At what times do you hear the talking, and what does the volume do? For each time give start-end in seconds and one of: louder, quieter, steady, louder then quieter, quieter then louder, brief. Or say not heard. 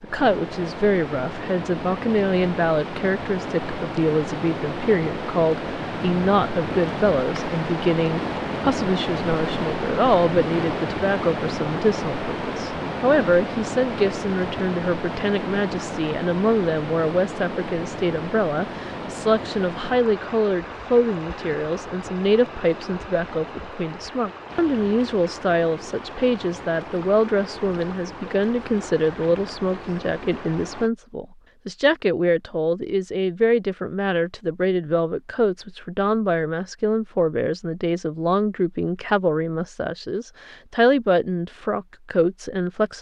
0.0-42.9 steady.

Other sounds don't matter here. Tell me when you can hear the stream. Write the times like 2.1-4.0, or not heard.
0.0-30.9.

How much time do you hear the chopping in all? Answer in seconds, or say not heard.
not heard.